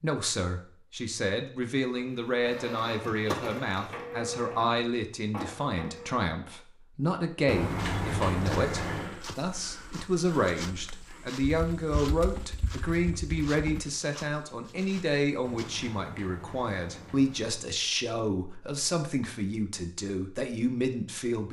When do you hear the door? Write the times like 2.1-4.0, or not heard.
7.5-9.2, 15.4-17.6.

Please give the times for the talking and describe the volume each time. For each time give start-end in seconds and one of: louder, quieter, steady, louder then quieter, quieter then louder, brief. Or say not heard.
0.0-21.4 steady.